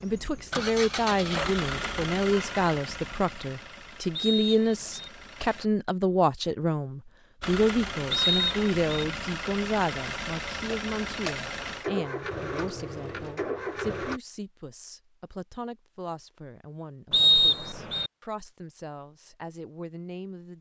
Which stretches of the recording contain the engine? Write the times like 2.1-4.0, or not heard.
0.0-5.7, 7.4-14.2.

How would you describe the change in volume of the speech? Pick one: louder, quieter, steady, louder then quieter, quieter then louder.
quieter.